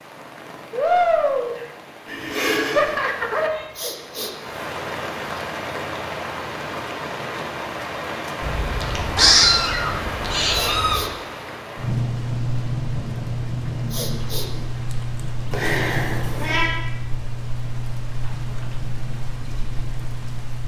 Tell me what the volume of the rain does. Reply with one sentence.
The volume of the rain goes down.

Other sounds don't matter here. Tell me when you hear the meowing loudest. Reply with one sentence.
The loudest moment of the meowing is at 9 seconds.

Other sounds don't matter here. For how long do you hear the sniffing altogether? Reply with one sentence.
The sniffing can be heard for 2 seconds in total.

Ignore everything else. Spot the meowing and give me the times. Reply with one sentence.
You can hear the meowing from 2.0 to 3.7 s, from 8.4 to 11.1 s and from 15.5 to 16.8 s.